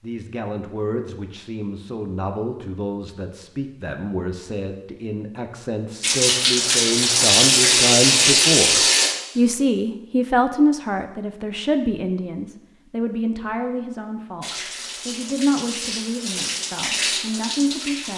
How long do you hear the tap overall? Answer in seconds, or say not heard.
7 s.